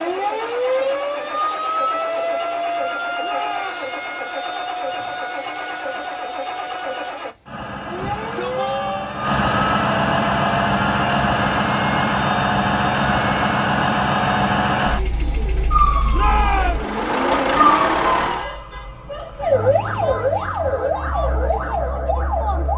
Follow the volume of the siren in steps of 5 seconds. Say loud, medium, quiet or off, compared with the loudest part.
loud, medium, medium, loud, loud.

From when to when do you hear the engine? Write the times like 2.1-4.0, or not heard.
0.0-18.5.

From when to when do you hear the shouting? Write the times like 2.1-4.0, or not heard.
3.2-3.9, 8.0-9.2, 16.1-16.8.